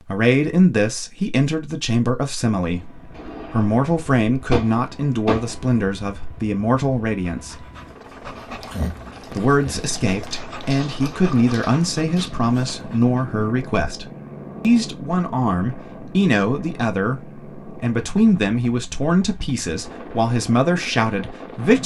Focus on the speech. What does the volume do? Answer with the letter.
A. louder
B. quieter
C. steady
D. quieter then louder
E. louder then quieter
C.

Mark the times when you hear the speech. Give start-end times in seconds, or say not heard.
0.1-7.7, 9.3-21.8.